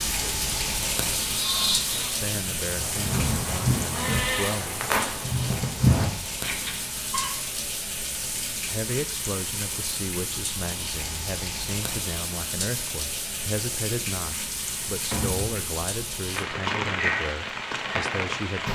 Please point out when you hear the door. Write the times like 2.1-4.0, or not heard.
3.1-4.4, 15.1-15.6.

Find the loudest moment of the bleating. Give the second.
6 s.